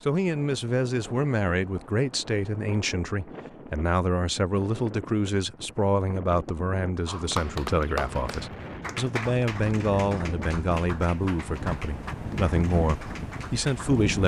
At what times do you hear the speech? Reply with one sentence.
You can hear the speech from 0.0 to 14.2 s.